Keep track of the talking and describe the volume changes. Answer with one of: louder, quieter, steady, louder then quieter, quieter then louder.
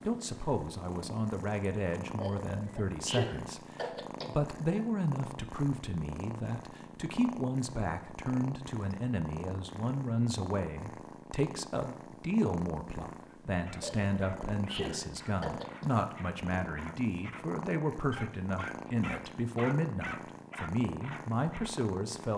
steady.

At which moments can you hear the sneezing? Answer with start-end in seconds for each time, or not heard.
2.1-4.8, 13.8-15.8.